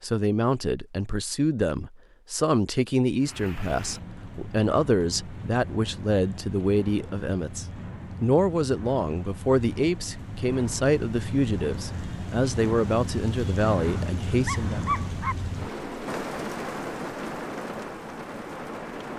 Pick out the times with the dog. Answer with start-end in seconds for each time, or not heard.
13.8-15.3.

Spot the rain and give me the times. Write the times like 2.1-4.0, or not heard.
3.1-19.1.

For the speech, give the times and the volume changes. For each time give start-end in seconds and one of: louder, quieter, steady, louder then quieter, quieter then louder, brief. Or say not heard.
0.0-14.8 steady.